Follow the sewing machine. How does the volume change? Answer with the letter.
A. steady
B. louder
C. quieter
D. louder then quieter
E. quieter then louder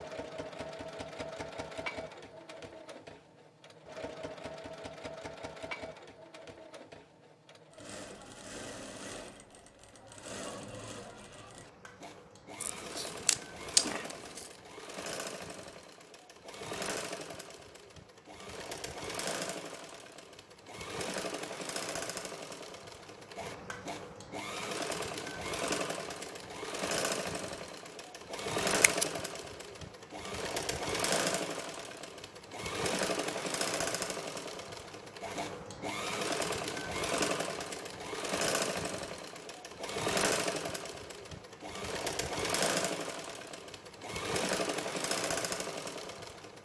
B.